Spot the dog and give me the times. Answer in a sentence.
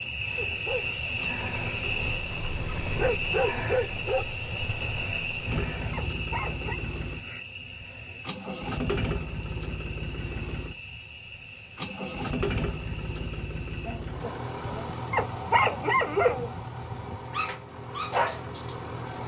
You can hear the dog from 0.3 to 6.8 s and from 14.2 to 19.1 s.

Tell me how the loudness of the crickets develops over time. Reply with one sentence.
The volume of the crickets goes down.